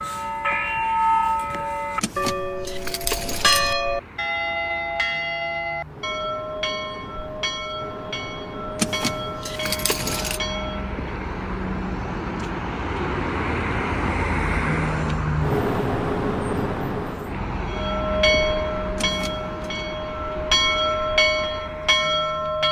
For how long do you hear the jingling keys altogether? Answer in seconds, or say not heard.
4 s.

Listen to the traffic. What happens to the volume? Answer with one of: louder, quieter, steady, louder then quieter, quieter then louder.
louder then quieter.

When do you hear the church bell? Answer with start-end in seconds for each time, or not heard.
0.0-11.0, 17.7-22.6.